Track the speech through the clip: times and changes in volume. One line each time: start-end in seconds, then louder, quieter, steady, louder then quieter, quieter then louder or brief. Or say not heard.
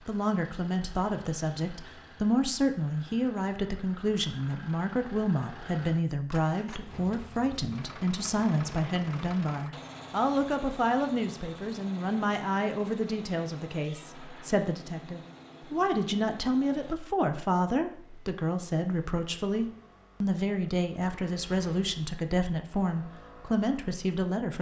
0.1-24.5 steady.